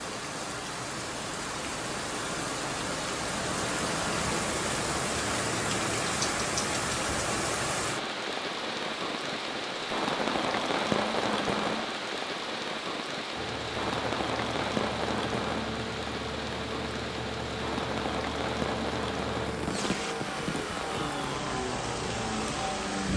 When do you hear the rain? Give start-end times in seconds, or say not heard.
0.0-23.1.